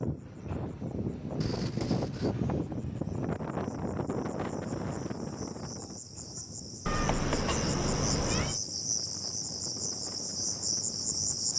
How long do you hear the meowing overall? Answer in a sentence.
You can hear the meowing for 3 seconds altogether.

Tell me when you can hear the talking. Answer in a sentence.
You can't hear the talking here.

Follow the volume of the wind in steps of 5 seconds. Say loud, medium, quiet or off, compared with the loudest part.
loud, medium, quiet.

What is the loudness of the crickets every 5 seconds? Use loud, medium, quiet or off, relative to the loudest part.
quiet, medium, loud.